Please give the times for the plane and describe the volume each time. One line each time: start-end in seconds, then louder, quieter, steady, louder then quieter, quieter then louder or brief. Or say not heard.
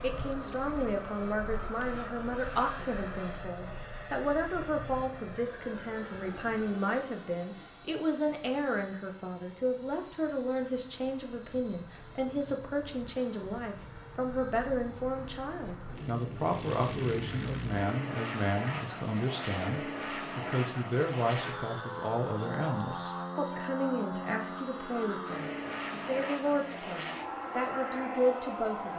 0.0-28.9 quieter then louder.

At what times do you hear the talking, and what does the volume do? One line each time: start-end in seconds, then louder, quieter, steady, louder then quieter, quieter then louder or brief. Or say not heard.
0.0-28.9 steady.